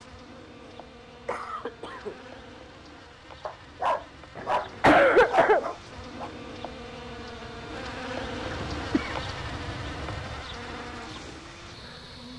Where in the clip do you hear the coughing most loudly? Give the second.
5 s.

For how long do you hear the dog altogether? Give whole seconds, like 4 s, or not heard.
3 s.